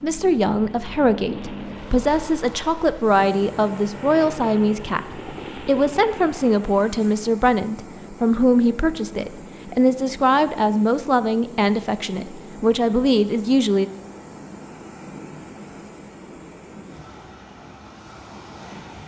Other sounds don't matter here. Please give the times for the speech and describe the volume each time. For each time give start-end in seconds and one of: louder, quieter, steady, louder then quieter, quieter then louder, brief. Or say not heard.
0.0-13.9 steady.